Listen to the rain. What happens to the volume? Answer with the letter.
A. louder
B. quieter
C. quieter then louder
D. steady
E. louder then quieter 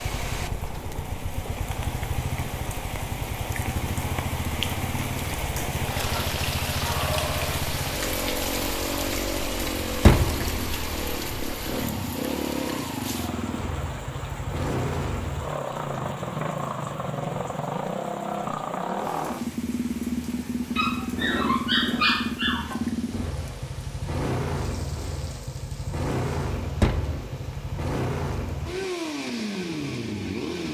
B.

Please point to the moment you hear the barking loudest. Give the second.
22 s.